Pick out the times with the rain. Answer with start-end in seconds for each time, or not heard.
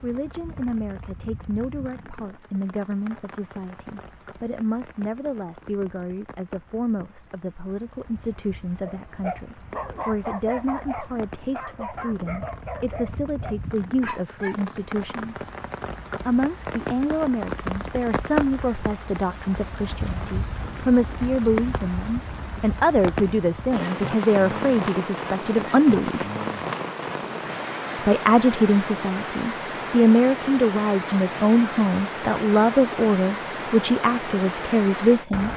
0.0-35.5.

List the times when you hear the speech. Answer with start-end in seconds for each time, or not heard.
0.0-15.4, 16.2-26.2, 27.9-35.5.